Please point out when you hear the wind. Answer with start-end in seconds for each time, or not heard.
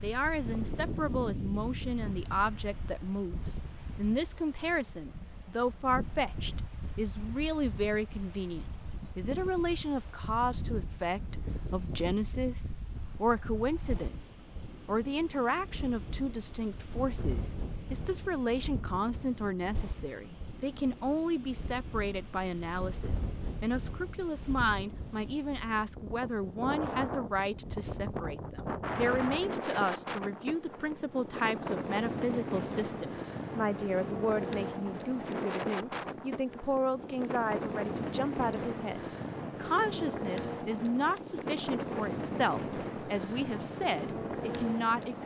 0.0-45.2.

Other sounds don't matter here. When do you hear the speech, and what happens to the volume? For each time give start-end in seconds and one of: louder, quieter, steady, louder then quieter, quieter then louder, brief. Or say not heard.
0.0-45.2 steady.